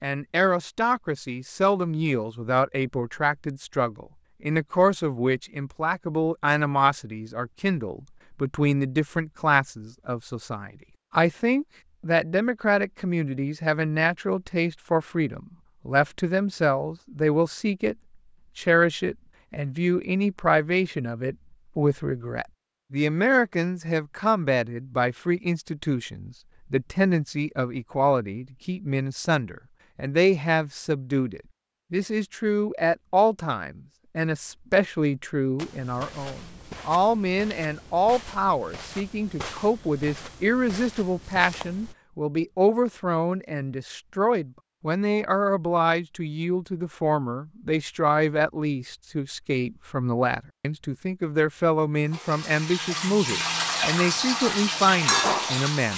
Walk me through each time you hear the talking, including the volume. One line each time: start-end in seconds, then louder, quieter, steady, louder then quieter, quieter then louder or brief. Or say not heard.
0.0-17.9 steady
18.6-55.9 steady.